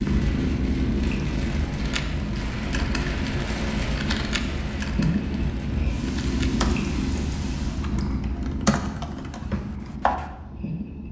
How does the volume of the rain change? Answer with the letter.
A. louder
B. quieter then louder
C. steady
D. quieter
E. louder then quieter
D.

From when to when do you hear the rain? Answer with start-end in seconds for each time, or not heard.
0.0-8.0.